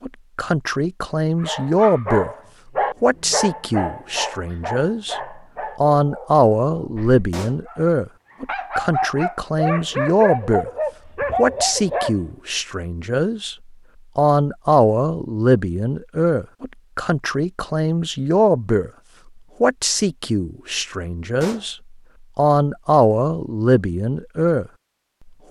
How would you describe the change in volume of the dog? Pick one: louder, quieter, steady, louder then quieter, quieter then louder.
quieter then louder.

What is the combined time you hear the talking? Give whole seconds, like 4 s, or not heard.
22 s.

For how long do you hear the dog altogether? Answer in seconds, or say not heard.
11 s.